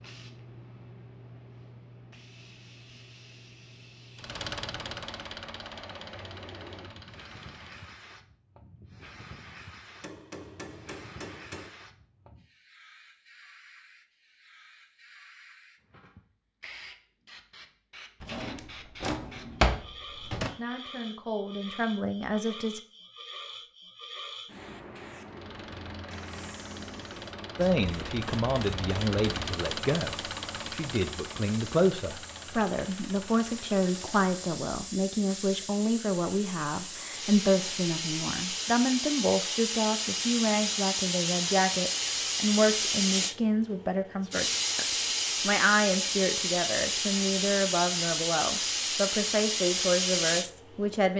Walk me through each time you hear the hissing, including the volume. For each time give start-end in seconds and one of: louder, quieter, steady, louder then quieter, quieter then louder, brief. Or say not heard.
0.0-51.0 louder.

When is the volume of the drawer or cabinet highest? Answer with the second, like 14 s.
20 s.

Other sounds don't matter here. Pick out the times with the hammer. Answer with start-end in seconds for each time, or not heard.
10.0-11.7.